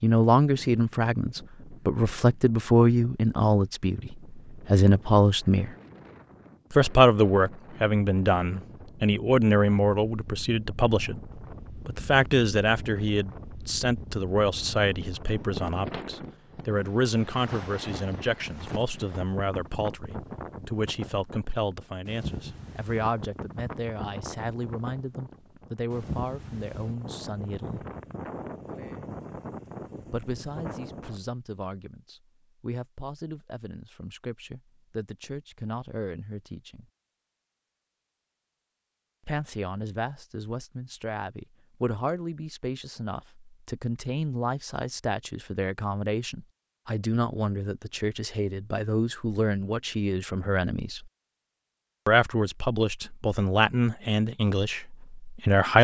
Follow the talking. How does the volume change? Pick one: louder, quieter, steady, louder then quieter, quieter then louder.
quieter then louder.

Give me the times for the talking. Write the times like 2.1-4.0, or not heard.
0.0-5.7, 6.7-11.2, 11.8-27.9, 30.1-36.9, 39.2-51.1, 52.0-55.7.